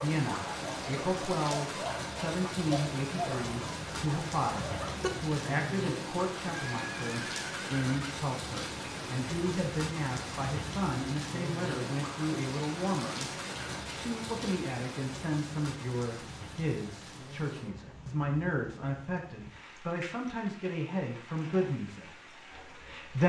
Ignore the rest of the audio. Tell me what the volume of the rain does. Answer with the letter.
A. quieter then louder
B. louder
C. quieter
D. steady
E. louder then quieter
C.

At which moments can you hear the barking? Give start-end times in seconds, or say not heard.
0.0-5.1.